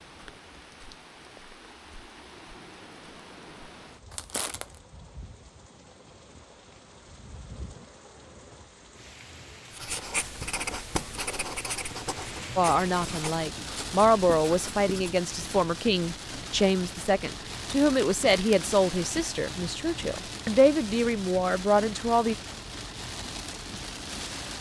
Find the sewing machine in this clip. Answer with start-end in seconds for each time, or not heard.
not heard.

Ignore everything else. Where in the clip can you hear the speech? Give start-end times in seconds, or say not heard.
12.6-22.4.